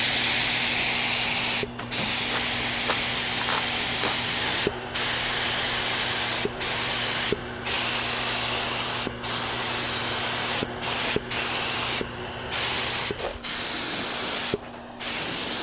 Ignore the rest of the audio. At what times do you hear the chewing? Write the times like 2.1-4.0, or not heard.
1.8-4.3.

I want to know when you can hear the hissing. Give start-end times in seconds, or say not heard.
0.0-15.5.